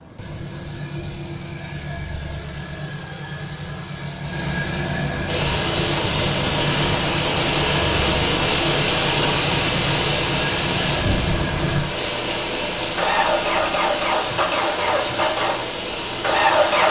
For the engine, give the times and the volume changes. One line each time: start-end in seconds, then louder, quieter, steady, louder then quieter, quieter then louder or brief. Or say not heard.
0.0-16.8 louder.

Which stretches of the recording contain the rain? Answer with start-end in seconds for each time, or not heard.
5.2-16.8.